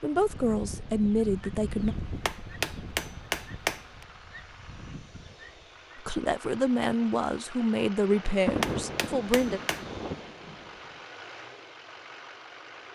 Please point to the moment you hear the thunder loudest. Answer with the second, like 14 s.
9 s.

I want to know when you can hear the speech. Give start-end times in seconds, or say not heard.
0.0-1.9, 6.0-9.6.